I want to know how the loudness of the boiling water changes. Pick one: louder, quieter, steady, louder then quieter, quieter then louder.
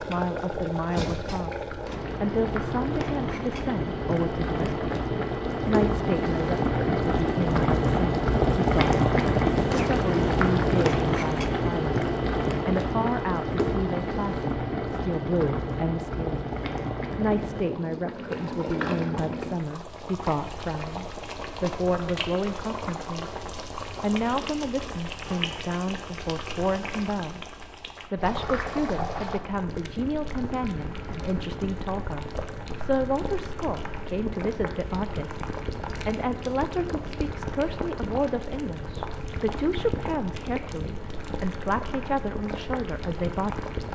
quieter.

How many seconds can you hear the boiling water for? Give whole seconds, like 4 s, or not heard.
44 s.